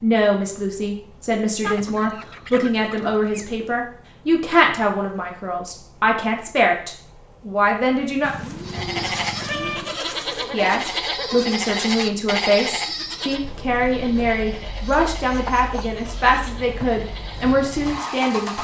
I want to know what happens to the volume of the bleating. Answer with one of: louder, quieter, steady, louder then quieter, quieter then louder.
quieter.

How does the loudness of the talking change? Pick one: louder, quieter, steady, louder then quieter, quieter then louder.
steady.